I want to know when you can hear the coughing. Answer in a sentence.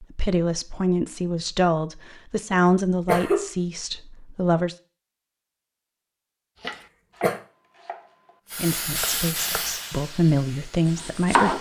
You can hear the coughing from 2.5 to 3.5 s and from 6.7 to 7.4 s.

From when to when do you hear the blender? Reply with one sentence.
The blender can't be heard in this clip.